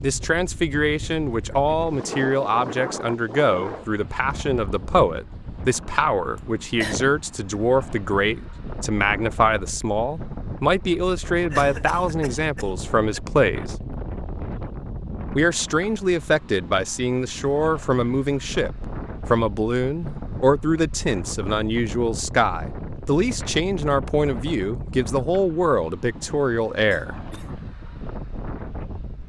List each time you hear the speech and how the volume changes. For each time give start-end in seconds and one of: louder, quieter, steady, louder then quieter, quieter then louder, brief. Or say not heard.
0.0-13.8 steady
15.3-27.1 steady.